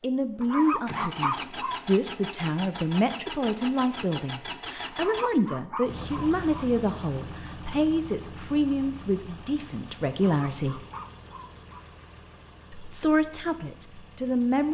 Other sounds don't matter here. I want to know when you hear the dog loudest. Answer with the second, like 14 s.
1 s.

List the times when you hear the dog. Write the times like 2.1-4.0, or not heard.
0.4-1.8, 4.9-6.7, 10.3-11.8.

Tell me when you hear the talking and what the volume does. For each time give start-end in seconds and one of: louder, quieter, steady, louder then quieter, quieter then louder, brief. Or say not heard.
0.0-10.8 steady
12.7-14.6 brief.